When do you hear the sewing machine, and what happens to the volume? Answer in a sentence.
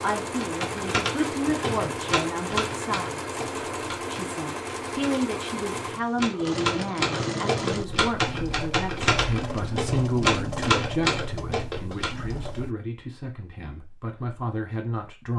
You can hear the sewing machine from 0.0 to 12.8 s, at a steady volume.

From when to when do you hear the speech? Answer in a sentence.
The speech can be heard from 0.0 to 3.4 s and from 4.0 to 15.3 s.